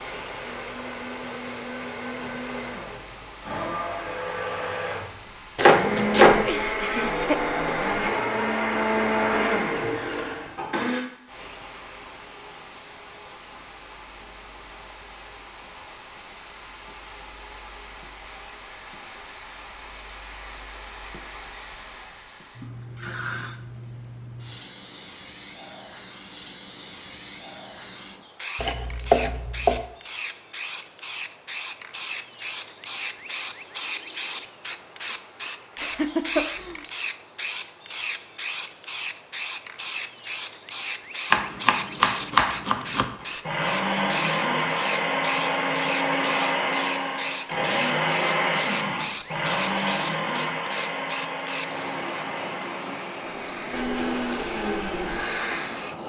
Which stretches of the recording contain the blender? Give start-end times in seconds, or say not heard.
0.0-11.0, 43.2-55.9.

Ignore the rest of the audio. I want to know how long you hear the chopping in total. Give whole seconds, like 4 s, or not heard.
4 s.